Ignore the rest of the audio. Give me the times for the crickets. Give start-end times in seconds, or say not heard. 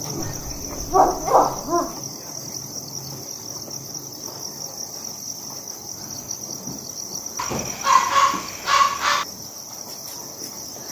0.0-10.8.